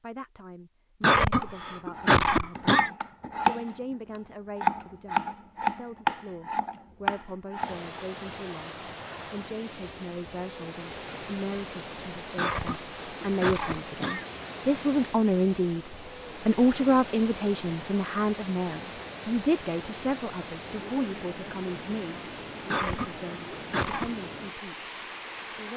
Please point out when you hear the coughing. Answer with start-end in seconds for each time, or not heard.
1.0-2.9, 12.3-14.2, 22.7-24.1.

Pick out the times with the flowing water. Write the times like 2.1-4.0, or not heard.
7.5-25.7.